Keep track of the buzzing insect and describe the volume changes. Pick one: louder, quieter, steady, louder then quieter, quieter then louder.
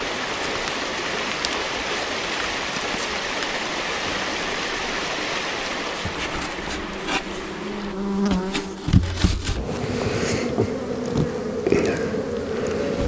louder.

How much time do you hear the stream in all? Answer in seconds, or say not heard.
8 s.